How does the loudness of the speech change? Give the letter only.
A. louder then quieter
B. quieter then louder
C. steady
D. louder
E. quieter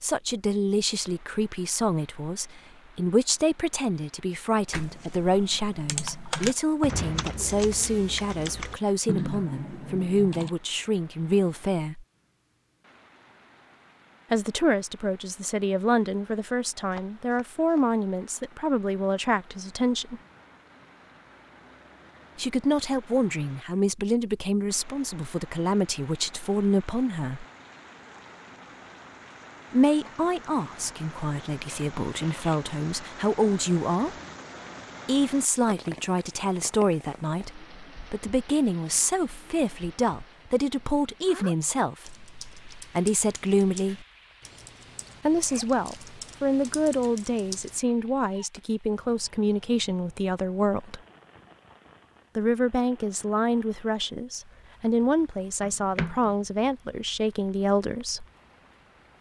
C.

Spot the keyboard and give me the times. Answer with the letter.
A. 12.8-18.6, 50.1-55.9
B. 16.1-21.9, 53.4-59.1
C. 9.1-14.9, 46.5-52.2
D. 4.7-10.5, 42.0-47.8
D.